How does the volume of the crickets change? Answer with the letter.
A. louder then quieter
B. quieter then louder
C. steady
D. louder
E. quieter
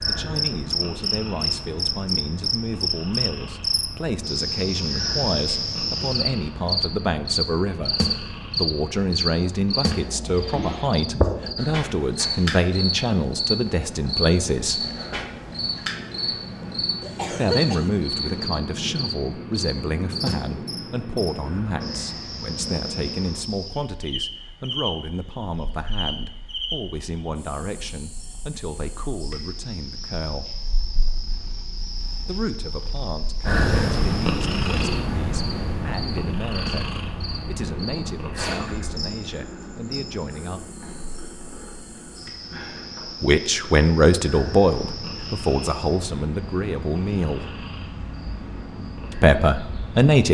E.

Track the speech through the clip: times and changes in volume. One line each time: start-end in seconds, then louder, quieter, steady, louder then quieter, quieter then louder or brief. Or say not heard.
0.1-14.8 louder
17.3-30.5 quieter
32.2-40.6 steady
43.2-47.5 quieter
49.1-50.2 brief.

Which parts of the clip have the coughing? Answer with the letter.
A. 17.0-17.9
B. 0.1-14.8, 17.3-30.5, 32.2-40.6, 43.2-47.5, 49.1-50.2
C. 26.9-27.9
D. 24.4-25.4
A.